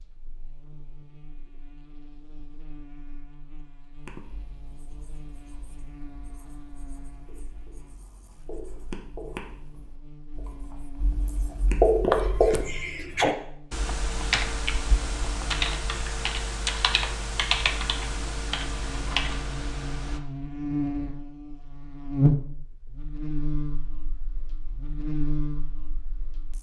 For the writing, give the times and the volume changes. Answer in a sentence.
You can hear the writing from 4.0 to 12.7 s, getting louder.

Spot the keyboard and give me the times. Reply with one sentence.
The keyboard can be heard from 13.7 to 20.2 s.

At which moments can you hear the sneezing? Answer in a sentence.
You can hear the sneezing from 12.1 to 13.3 s.